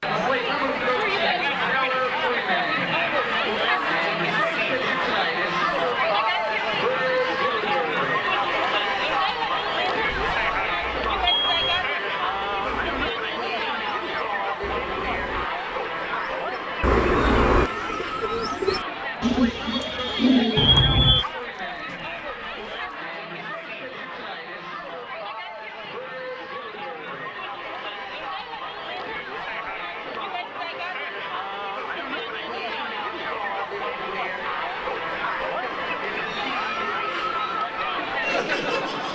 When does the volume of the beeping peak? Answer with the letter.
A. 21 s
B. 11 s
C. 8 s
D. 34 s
A.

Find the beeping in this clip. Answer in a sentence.
You can hear the beeping from 10.1 to 11.9 s and from 20.6 to 21.2 s.